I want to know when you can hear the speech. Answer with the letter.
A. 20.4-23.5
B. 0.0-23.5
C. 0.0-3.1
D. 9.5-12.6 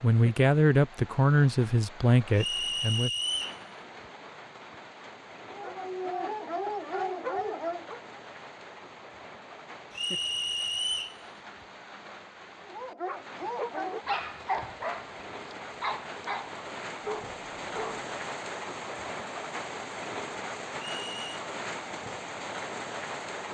C.